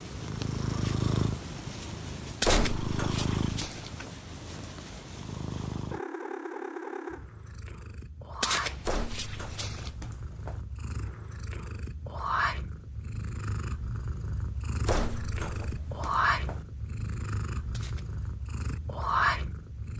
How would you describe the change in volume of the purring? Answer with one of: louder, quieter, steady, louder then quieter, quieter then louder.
quieter then louder.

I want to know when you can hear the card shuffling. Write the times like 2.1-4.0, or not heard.
2.4-4.0, 8.4-9.9, 17.7-18.2.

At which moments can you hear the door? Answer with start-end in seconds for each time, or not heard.
2.4-4.1, 8.8-10.6, 14.8-16.6.